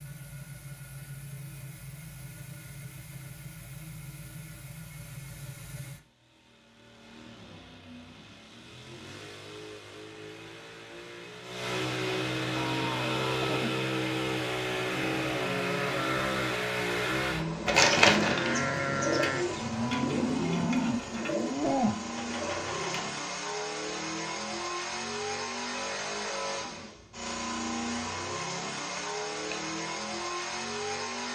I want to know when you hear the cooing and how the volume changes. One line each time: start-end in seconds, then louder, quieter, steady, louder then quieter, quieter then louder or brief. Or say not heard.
17.6-23.1 quieter.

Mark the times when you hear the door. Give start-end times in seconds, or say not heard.
28.9-29.6.